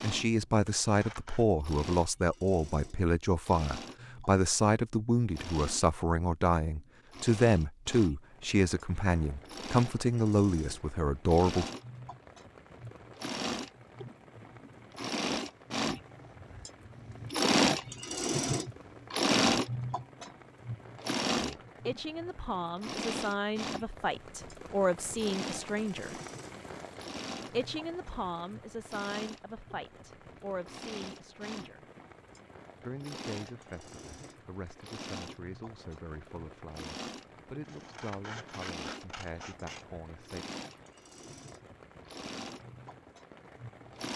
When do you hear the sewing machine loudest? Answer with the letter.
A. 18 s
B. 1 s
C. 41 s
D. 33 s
A.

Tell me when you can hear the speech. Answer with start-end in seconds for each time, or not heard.
0.0-11.7, 21.4-26.2, 27.5-31.9, 32.8-40.5.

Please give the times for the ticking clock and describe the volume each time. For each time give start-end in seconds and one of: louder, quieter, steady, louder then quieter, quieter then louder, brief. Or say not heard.
not heard.